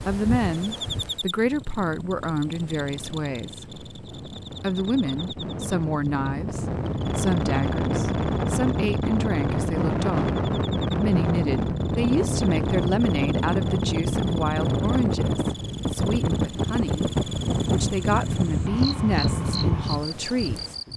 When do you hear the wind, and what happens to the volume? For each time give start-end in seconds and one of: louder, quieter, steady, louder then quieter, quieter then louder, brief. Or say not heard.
0.0-20.9 louder.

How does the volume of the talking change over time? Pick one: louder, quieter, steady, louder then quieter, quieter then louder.
steady.